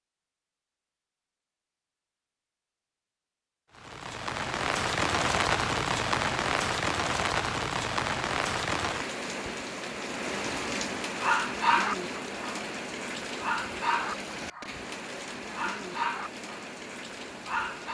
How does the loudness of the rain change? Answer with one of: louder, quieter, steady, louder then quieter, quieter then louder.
quieter.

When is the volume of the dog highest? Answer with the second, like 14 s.
12 s.